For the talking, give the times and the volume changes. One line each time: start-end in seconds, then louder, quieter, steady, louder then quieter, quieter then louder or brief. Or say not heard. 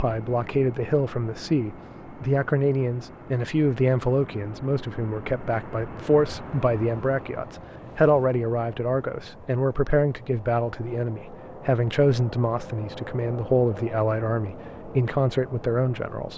0.0-16.3 steady.